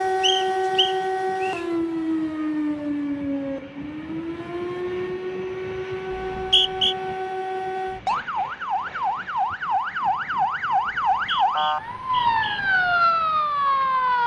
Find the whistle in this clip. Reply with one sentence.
You can hear the whistle from 0.2 to 1.6 s, from 6.1 to 7.0 s and from 11.1 to 12.6 s.